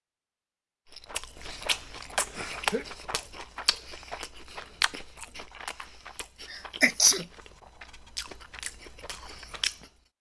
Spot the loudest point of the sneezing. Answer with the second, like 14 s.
7 s.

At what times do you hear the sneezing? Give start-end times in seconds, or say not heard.
1.4-2.9, 6.5-7.2.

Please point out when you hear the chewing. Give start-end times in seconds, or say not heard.
0.9-9.9.